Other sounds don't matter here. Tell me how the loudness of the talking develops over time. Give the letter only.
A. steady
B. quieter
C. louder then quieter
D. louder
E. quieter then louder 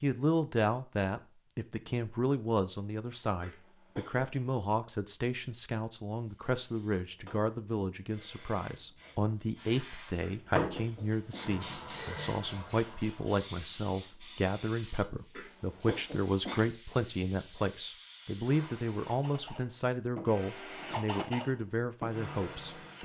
A.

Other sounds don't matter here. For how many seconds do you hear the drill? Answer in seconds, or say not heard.
4 s.